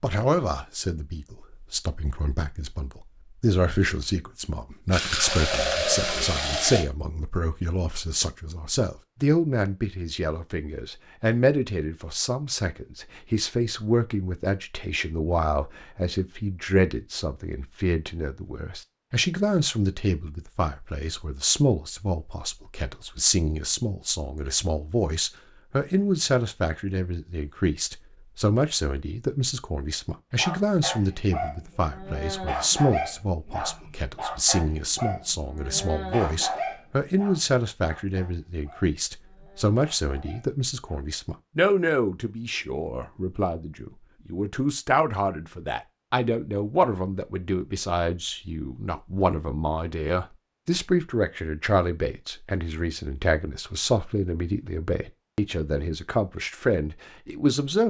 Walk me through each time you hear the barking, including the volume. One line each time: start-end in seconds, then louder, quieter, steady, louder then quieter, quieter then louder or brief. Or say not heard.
30.4-41.0 quieter.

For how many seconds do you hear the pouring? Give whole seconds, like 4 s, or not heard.
2 s.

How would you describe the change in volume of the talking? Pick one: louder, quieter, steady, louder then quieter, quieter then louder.
steady.